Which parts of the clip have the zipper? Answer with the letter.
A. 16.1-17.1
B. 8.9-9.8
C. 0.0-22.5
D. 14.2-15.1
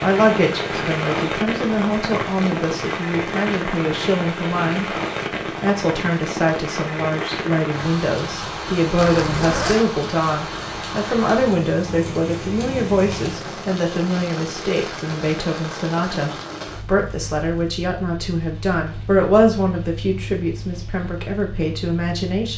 B.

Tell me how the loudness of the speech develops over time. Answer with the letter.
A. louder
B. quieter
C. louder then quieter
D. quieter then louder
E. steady
E.